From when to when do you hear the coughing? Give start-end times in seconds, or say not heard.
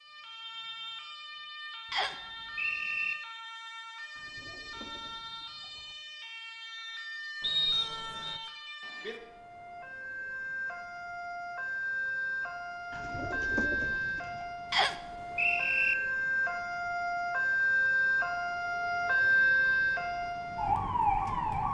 not heard.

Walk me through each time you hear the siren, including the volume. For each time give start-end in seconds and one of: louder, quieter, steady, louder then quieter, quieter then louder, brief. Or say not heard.
0.0-21.6 louder.